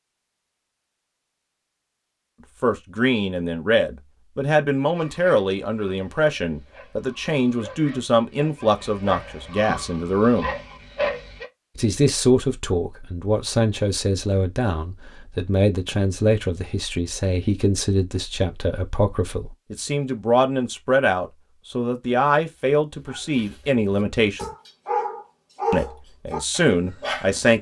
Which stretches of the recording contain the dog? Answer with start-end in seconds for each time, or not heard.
4.9-11.4, 22.9-27.4.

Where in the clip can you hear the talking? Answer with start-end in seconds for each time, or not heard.
2.6-10.5, 11.8-24.5, 25.7-27.5.